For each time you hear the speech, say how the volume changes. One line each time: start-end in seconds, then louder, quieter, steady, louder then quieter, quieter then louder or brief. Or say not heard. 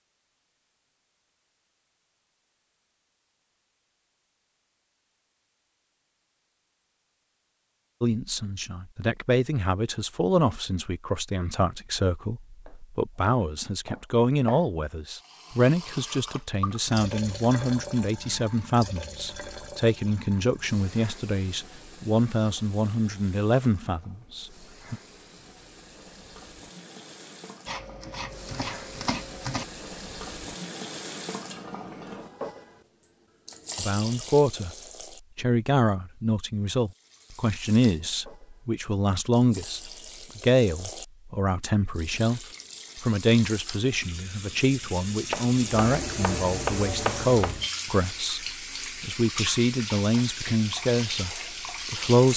8.0-25.0 steady
33.8-34.8 brief
35.4-52.3 steady.